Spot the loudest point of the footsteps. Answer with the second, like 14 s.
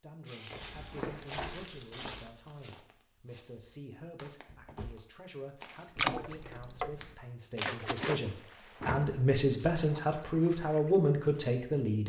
2 s.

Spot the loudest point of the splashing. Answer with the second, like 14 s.
6 s.